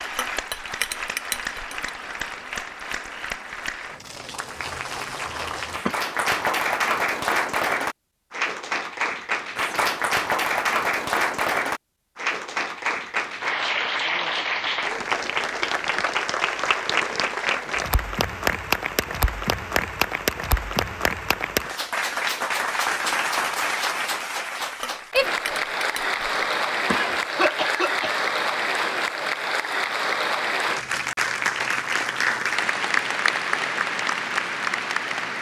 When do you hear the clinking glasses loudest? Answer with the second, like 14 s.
1 s.